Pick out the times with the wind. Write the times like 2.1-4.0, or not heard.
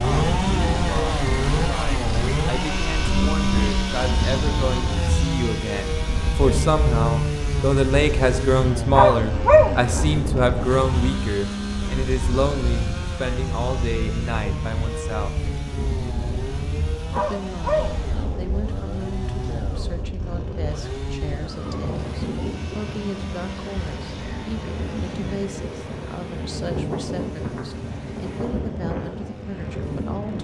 0.0-30.3.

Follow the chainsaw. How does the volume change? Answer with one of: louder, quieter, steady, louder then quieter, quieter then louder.
quieter.